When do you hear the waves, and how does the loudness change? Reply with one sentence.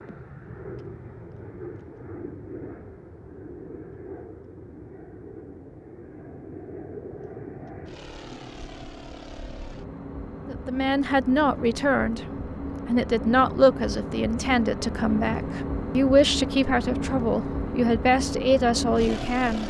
The waves can't be heard in this clip.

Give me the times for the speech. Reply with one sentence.
You can hear the speech from 10.5 to 12.2 s and from 12.8 to 19.6 s.